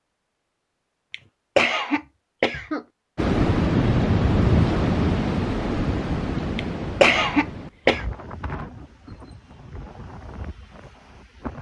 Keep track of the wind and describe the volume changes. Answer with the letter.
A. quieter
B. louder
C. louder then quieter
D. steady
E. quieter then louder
A.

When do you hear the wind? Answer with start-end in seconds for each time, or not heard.
3.1-11.5.